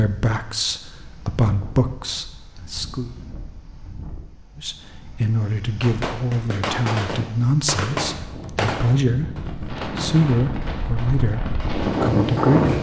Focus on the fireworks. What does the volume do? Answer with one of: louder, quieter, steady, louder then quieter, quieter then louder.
quieter.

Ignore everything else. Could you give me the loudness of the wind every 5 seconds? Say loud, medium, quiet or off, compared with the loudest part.
quiet, quiet, loud.